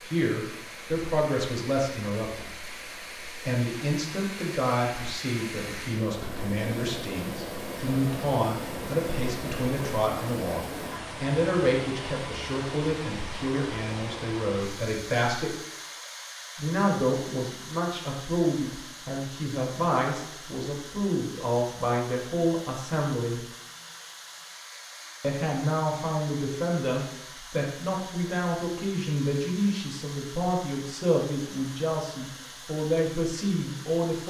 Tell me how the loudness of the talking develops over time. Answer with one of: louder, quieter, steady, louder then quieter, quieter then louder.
steady.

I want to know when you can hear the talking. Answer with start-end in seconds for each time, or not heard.
0.0-15.6, 16.6-23.4, 25.2-34.2.